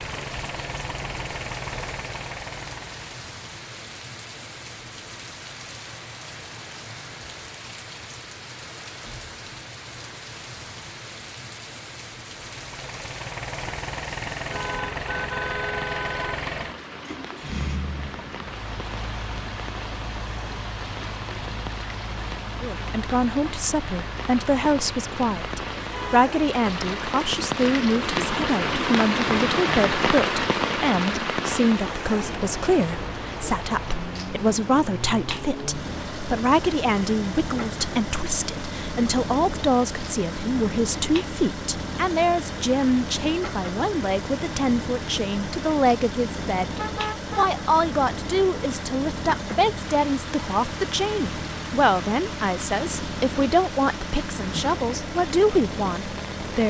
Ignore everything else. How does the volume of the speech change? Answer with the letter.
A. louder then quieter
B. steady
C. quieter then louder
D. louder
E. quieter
B.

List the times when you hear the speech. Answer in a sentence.
The speech can be heard from 22.6 to 46.8 s and from 47.4 to 56.6 s.